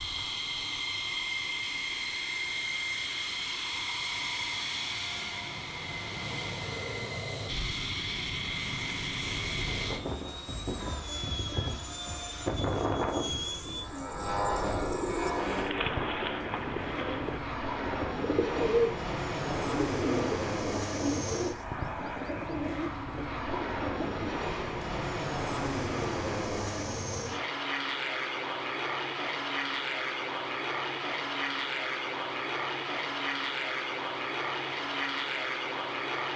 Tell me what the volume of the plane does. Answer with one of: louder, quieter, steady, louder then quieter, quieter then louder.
steady.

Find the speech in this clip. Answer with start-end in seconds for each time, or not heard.
not heard.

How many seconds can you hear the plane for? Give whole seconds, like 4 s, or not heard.
36 s.